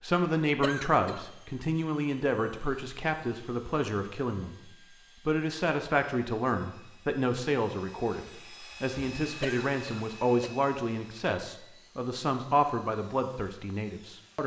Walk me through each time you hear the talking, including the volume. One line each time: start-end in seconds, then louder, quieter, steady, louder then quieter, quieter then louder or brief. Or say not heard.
0.0-14.4 steady.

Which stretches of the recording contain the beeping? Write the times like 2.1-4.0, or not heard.
not heard.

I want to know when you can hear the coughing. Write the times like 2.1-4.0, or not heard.
0.6-1.2, 9.4-10.5.